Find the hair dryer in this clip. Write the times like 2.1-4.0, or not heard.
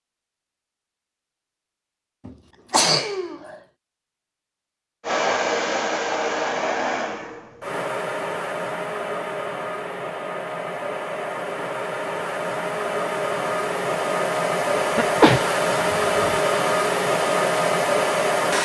5.0-18.5.